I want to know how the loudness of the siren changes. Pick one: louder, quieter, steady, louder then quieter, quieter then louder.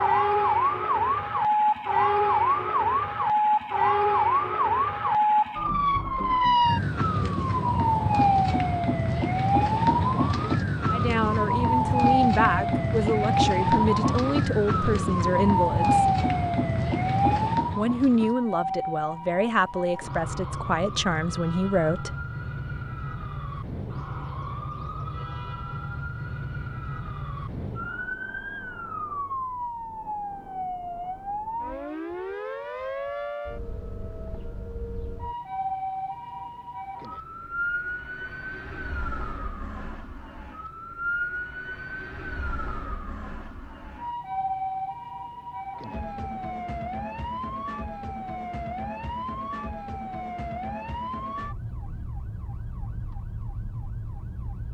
quieter.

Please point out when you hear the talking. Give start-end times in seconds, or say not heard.
10.9-16.1, 17.8-22.1.